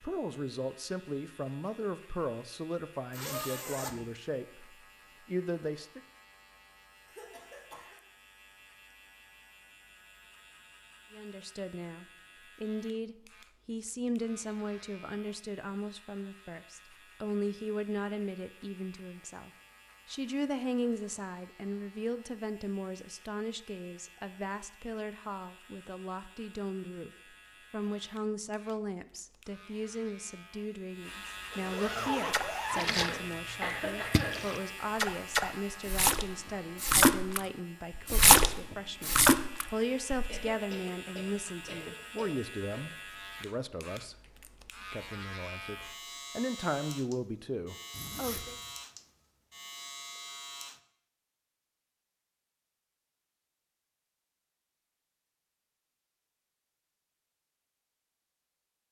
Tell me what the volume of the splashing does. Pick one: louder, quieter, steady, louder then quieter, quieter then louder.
louder.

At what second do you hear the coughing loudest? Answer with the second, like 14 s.
34 s.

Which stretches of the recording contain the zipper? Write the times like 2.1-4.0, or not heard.
3.1-4.1, 31.5-33.0, 47.9-48.8.